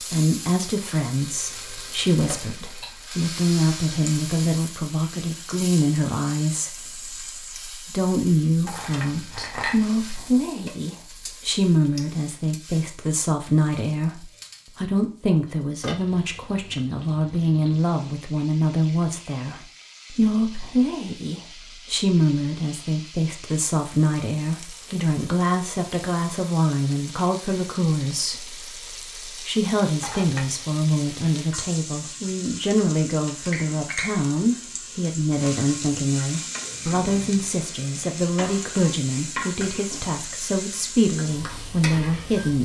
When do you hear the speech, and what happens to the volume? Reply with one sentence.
The speech can be heard from 0.0 to 42.6 s, at a steady volume.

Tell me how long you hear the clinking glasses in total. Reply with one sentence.
The clinking glasses can be heard for 2 seconds in total.